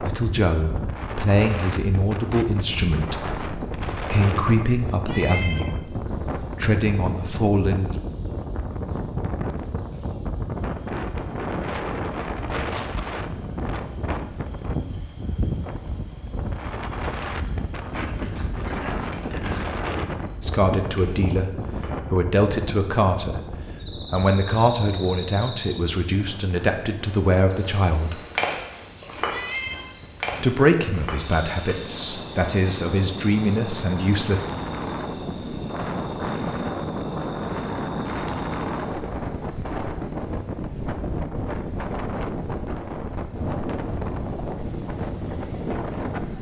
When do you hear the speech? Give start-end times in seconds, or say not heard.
0.0-8.0, 20.4-28.2, 30.4-34.4.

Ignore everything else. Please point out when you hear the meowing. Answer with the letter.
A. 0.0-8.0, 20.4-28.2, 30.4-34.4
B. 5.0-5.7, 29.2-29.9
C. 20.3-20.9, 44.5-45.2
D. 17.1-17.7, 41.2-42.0
B.